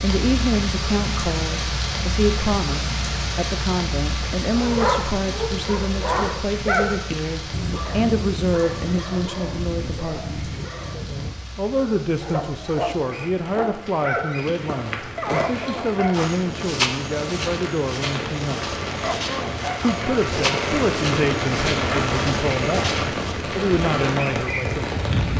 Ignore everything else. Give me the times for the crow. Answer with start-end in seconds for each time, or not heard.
not heard.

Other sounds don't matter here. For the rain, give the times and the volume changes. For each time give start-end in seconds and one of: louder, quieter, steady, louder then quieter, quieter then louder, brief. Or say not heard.
0.0-25.3 quieter then louder.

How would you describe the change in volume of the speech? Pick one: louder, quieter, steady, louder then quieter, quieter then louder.
steady.